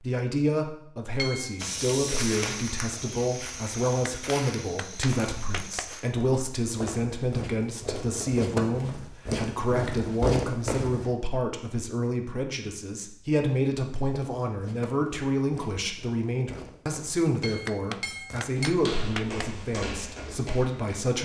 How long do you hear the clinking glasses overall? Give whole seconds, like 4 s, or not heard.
2 s.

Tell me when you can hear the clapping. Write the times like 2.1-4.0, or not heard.
4.0-5.9, 17.6-19.6.